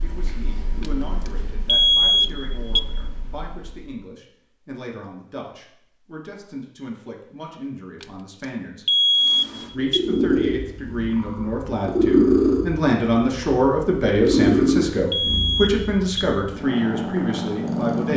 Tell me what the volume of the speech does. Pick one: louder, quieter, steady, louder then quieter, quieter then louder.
louder.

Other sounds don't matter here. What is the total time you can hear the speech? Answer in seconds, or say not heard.
17 s.